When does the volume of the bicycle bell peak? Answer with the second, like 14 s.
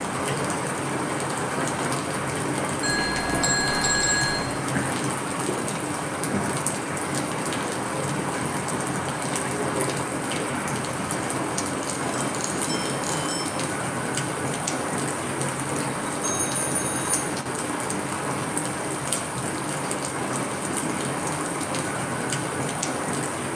4 s.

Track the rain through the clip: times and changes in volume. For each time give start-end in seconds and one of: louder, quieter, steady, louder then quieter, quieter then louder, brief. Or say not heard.
0.0-23.5 steady.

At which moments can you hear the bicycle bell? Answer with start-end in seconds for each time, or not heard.
2.8-4.4, 11.8-13.4, 16.2-17.1.